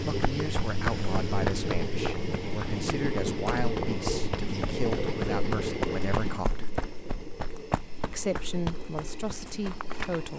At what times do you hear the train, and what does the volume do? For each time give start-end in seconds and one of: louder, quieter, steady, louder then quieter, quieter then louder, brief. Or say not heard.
0.0-10.3 quieter.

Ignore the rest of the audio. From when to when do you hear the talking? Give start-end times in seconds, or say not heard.
0.0-6.7, 8.1-10.3.